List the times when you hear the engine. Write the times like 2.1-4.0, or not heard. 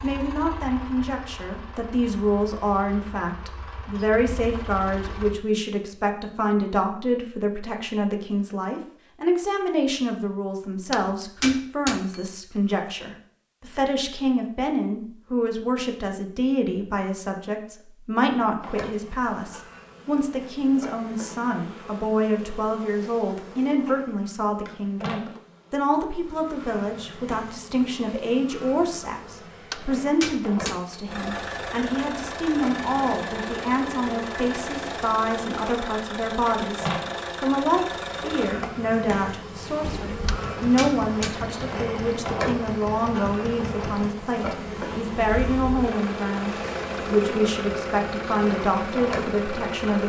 0.0-5.3, 31.1-50.0.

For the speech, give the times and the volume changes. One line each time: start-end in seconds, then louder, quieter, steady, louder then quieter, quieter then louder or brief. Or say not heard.
0.0-50.0 steady.